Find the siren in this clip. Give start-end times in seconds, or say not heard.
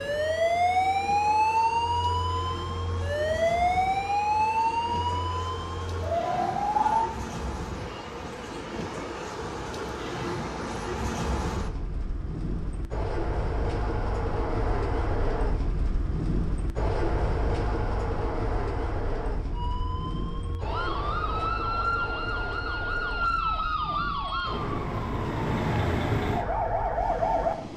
0.0-7.1, 19.5-27.7.